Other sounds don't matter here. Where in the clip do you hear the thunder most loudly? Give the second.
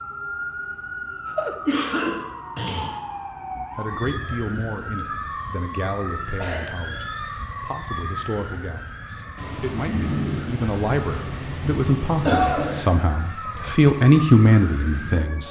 10 s.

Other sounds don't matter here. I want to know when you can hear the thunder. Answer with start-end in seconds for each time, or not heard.
9.3-13.0.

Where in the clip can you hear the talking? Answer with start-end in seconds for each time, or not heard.
3.5-15.4.